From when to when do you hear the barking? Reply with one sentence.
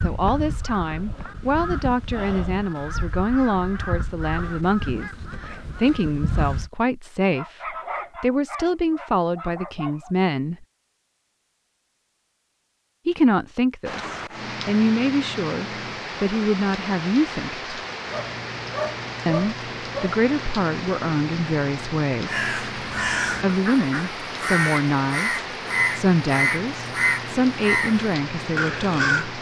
You can hear the barking from 7.3 to 10.2 s and from 18.1 to 20.2 s.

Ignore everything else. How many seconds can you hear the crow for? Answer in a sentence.
The crow can be heard for 14 seconds in total.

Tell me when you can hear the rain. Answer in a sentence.
The rain can be heard from 13.8 to 29.3 s.